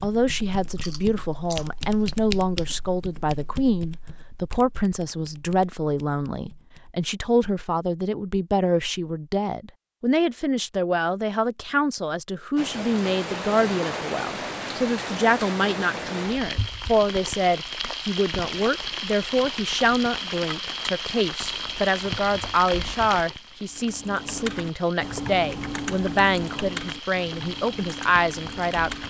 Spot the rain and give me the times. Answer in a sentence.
The rain can be heard from 12.6 to 29.0 s.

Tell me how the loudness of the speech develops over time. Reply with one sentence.
The volume of the speech stays about the same.